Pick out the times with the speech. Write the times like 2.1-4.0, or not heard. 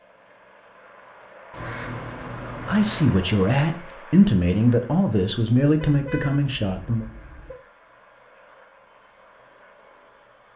2.6-7.0.